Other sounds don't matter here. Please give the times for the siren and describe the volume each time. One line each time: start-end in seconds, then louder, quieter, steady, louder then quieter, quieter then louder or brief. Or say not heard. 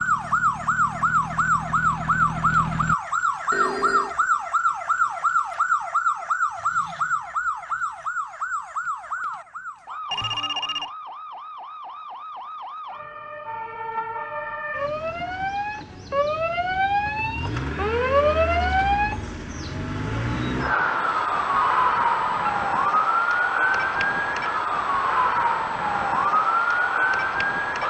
0.0-27.8 quieter then louder.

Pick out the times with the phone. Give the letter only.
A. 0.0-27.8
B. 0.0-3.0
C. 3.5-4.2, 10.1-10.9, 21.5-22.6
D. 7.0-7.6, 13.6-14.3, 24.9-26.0
C.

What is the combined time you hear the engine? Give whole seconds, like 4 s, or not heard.
3 s.